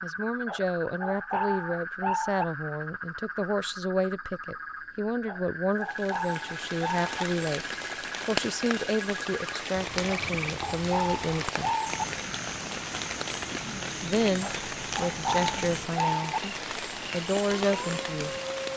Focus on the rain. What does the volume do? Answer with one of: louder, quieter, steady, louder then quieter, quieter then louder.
steady.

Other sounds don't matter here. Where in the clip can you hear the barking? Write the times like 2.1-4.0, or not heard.
0.5-2.5, 5.2-7.1, 10.1-12.1, 14.4-16.4.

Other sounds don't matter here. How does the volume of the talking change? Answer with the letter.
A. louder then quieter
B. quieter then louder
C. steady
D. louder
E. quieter
C.